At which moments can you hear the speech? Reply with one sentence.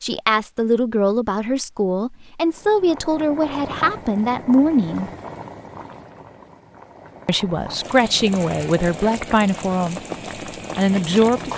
The speech can be heard from 0.0 to 5.1 s, from 7.2 to 10.0 s and from 10.8 to 11.5 s.